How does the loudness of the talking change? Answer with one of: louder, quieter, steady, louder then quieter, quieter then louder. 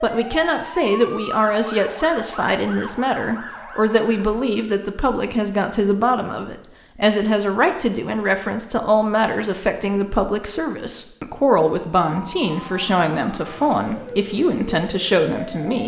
steady.